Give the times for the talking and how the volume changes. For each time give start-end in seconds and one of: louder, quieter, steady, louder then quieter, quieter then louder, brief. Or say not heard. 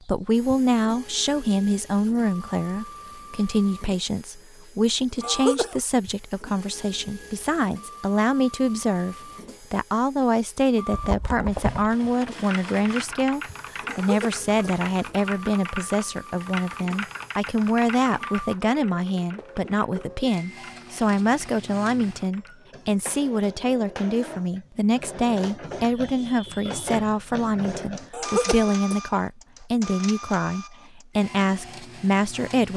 0.1-32.7 steady.